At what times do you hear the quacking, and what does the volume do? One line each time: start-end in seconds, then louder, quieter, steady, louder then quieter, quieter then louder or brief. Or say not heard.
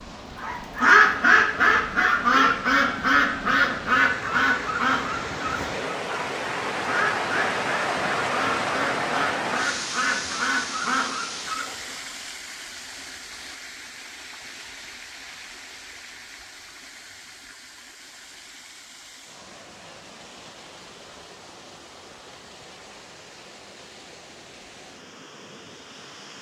0.3-11.9 quieter.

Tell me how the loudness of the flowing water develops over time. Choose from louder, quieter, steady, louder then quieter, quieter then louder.
louder then quieter.